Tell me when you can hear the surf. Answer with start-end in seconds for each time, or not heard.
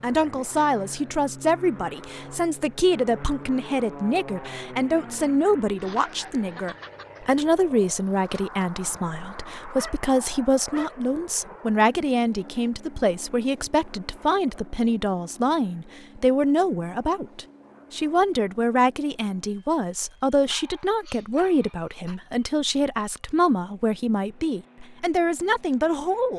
not heard.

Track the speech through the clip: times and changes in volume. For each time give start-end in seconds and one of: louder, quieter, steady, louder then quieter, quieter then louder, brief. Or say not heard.
0.0-26.3 steady.